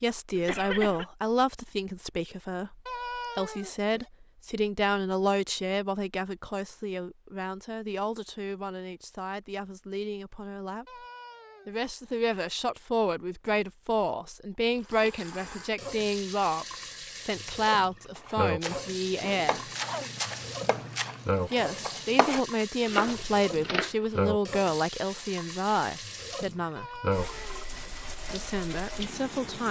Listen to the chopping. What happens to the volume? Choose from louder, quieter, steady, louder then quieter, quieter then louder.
louder.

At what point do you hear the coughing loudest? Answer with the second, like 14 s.
1 s.